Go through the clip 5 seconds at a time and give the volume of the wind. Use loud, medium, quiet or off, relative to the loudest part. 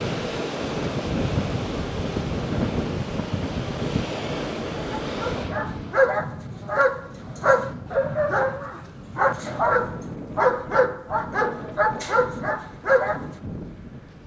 loud, medium, medium.